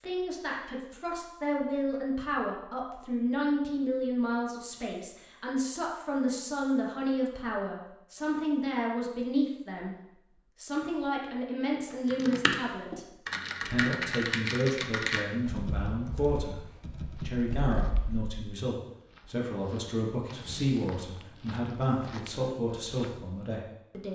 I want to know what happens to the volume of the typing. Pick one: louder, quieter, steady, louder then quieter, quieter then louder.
quieter.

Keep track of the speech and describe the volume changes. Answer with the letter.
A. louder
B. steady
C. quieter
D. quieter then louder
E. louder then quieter
B.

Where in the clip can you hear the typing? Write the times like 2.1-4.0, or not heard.
11.9-18.4.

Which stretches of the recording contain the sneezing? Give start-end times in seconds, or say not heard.
not heard.